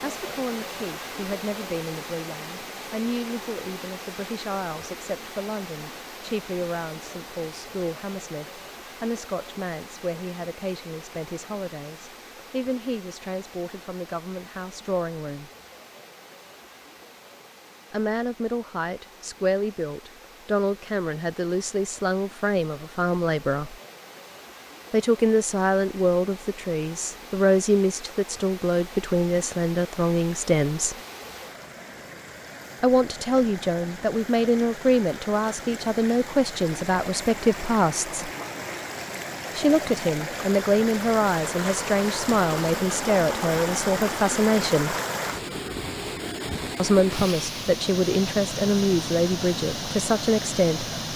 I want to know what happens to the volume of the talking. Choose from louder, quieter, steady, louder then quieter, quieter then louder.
louder.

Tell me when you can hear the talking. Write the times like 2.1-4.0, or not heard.
0.0-15.5, 17.9-23.8, 24.9-30.9, 32.8-38.3, 39.5-45.0, 46.8-50.9.